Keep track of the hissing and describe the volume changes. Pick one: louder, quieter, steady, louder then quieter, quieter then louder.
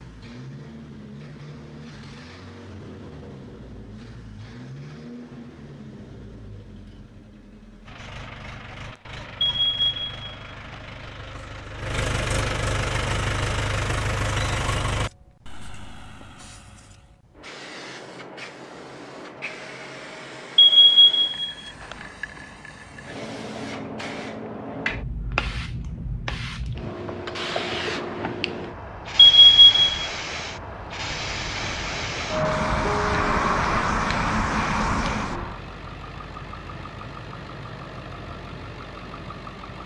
louder.